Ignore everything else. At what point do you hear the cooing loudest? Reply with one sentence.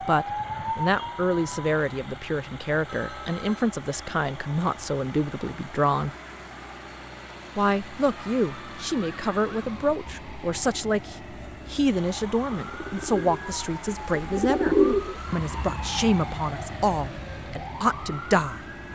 The volume of the cooing peaks at 15 seconds.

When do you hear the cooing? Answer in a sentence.
You can hear the cooing from 12.7 to 15.2 s.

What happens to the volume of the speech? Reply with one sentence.
The loudness of the speech stays about the same.